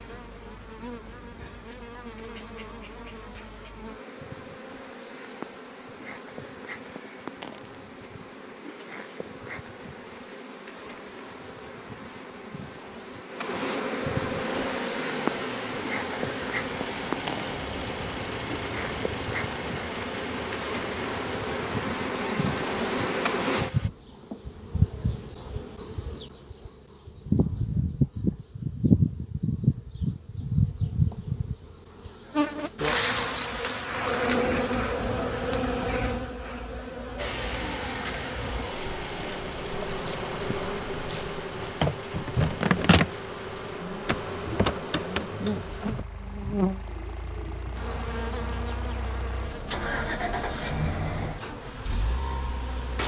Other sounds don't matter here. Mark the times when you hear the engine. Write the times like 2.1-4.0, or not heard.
14.3-23.9, 37.1-53.0.